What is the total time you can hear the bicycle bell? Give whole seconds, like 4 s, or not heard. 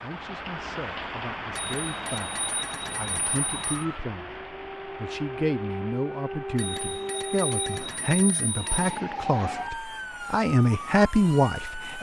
5 s.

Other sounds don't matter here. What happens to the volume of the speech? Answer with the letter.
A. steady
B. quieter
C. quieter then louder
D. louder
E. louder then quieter
D.